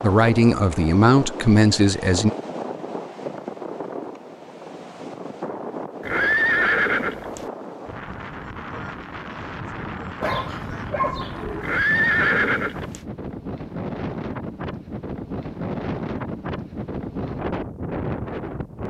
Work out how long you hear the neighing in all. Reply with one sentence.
The neighing can be heard for 3 seconds in total.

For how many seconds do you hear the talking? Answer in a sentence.
You can hear the talking for 2 seconds altogether.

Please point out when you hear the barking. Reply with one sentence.
You can hear the barking from 10.2 to 11.8 s.